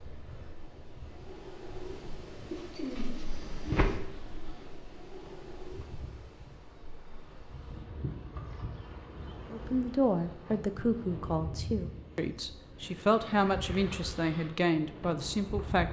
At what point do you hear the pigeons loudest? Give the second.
4 s.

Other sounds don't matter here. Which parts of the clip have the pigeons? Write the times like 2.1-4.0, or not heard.
2.5-4.0.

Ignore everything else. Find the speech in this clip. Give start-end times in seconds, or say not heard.
9.5-15.8.